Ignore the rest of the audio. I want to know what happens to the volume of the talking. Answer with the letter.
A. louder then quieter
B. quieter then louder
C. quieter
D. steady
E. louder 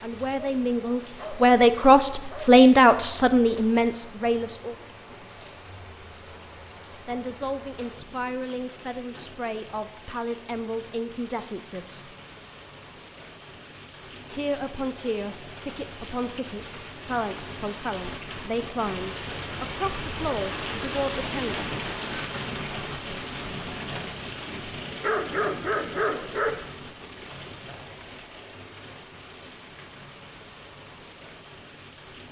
C.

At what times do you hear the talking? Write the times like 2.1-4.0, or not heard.
0.0-4.8, 7.0-12.1, 14.3-21.6.